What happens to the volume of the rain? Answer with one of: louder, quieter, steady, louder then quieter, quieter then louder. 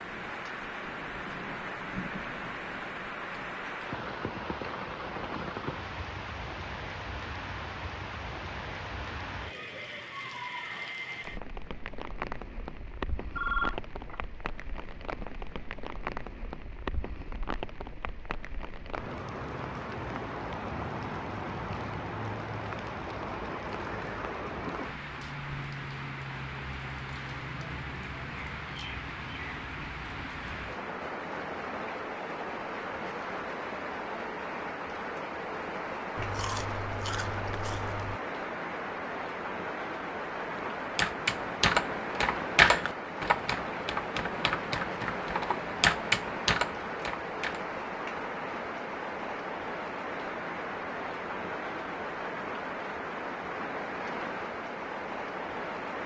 steady.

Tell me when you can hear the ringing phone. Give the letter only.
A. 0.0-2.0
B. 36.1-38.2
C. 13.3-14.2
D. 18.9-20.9
C.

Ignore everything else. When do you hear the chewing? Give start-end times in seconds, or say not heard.
36.1-38.2.